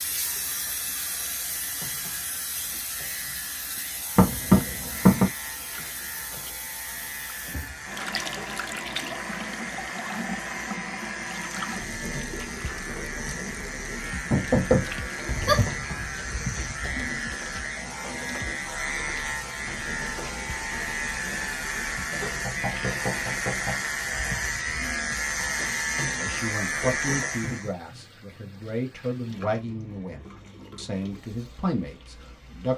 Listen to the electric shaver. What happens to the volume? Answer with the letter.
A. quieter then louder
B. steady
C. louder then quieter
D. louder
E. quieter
D.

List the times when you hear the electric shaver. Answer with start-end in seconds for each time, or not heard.
0.0-27.7.